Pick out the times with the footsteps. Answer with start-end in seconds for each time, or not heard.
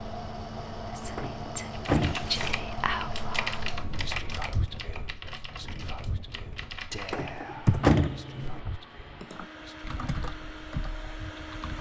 not heard.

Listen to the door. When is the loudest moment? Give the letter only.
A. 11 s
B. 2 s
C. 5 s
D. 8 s
D.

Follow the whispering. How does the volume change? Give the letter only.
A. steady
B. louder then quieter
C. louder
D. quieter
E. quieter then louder
D.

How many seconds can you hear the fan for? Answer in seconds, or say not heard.
12 s.